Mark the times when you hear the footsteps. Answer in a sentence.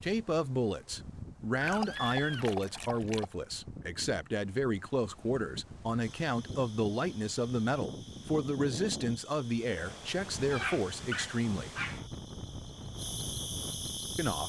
You can't hear the footsteps here.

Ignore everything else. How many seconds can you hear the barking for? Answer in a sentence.
You can hear the barking for 3 seconds altogether.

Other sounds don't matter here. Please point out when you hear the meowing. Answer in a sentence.
The meowing can be heard from 1.6 to 2.6 s and from 10.3 to 10.8 s.